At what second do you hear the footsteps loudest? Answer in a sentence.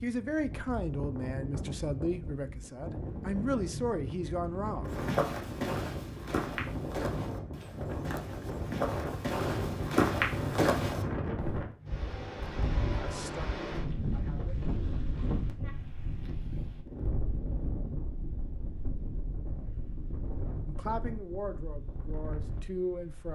The volume of the footsteps peaks at 10 seconds.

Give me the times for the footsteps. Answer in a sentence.
You can hear the footsteps from 4.8 to 11.7 s.